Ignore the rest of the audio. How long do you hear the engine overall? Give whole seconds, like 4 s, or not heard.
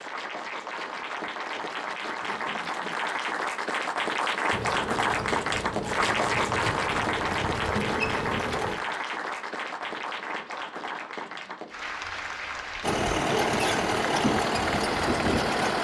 7 s.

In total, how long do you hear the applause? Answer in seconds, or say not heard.
16 s.